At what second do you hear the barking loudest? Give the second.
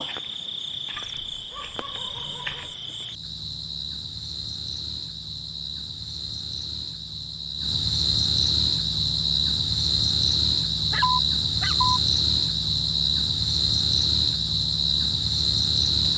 11 s.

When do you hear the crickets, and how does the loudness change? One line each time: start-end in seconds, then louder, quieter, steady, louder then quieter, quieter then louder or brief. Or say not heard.
0.0-16.1 louder.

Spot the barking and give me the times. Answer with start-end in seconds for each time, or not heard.
1.1-2.8, 10.9-12.0.